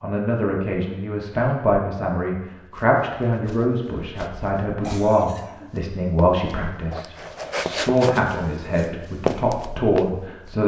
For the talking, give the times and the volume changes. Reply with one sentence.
The talking can be heard from 0.0 to 10.6 s, at a steady volume.